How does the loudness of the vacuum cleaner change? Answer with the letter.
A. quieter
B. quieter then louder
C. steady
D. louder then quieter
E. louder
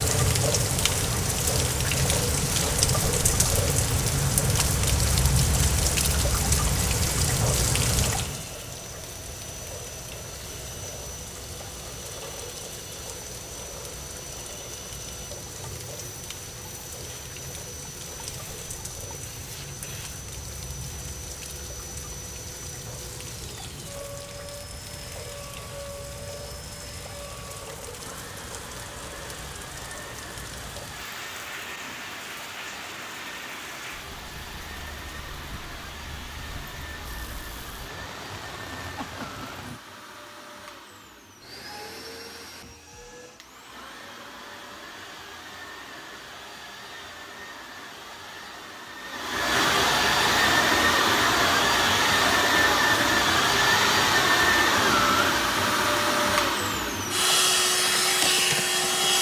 E.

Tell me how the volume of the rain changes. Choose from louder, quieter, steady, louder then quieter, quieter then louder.
quieter.